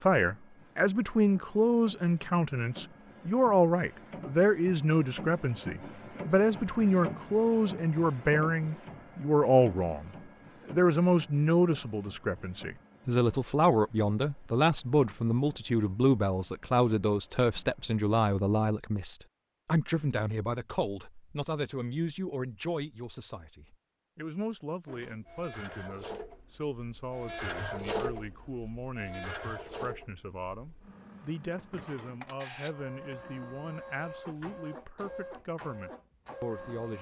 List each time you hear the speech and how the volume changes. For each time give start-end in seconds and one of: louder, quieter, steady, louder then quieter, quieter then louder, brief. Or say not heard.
0.0-36.9 quieter.